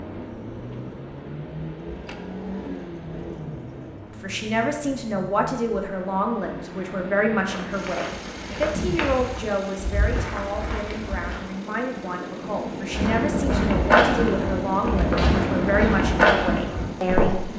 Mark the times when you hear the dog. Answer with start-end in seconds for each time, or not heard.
not heard.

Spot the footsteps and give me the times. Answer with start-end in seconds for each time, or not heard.
7.5-11.4, 12.9-17.4.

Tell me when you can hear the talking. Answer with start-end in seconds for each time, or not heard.
4.1-17.5.